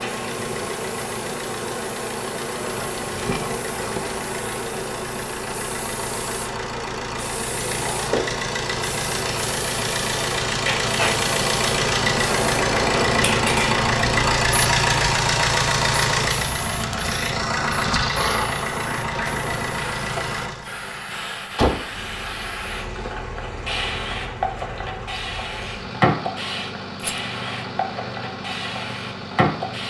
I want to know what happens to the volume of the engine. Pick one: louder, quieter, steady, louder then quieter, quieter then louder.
louder then quieter.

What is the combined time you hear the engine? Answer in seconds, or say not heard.
30 s.